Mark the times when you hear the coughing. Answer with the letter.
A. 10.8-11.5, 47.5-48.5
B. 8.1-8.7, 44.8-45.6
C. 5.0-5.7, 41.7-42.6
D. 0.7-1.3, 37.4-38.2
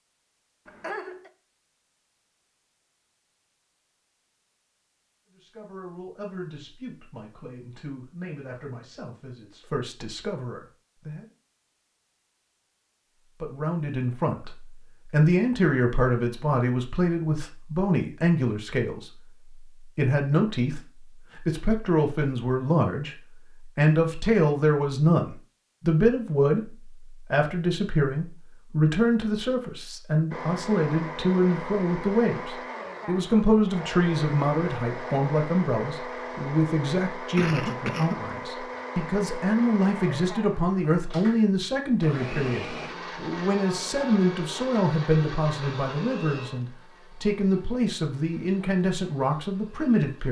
D.